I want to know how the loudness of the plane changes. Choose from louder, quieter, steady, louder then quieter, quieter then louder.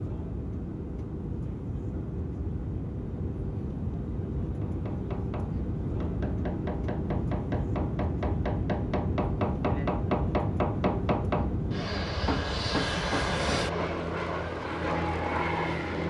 louder.